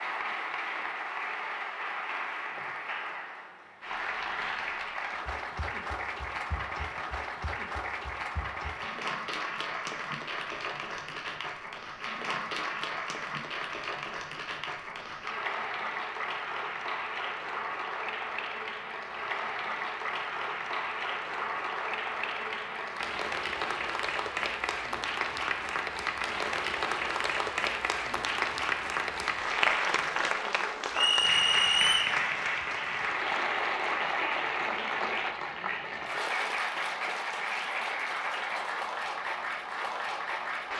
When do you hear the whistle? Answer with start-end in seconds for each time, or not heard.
30.9-32.1.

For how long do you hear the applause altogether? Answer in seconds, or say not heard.
41 s.